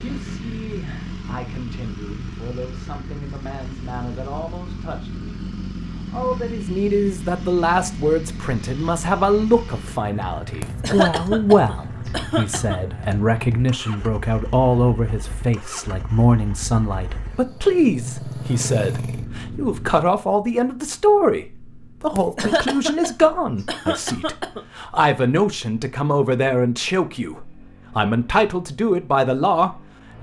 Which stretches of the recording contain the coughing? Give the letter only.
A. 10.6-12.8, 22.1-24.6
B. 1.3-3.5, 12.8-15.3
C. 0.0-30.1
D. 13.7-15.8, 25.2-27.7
A.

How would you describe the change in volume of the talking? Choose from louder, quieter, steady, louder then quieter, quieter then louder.
louder.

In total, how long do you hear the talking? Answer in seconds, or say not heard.
30 s.